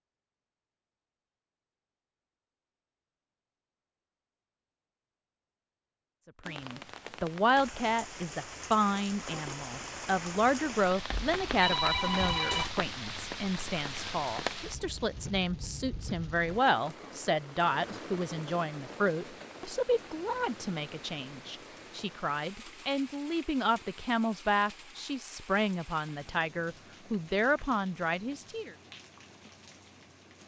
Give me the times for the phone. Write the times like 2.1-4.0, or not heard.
11.1-12.7.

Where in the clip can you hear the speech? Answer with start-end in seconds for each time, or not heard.
6.5-28.8.